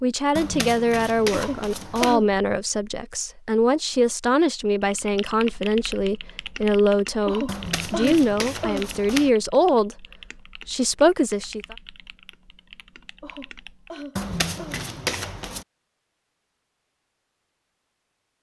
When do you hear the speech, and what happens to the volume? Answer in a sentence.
You can hear the speech from 0.0 to 10.1 s, at a steady volume; and briefly from 10.7 to 11.8 s.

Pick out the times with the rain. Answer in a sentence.
The rain can't be heard in this clip.